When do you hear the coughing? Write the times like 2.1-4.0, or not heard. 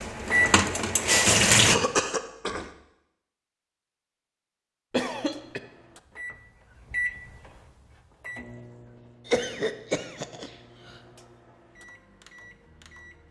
1.6-2.7, 4.9-5.6, 9.2-10.5.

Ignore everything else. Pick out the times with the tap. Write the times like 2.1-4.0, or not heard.
0.0-1.8.